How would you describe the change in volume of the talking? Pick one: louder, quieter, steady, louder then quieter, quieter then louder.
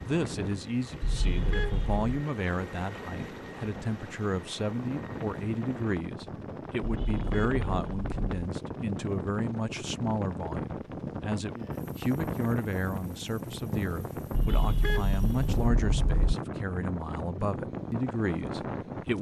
steady.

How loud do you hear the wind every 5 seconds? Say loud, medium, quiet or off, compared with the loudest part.
medium, loud, loud, loud.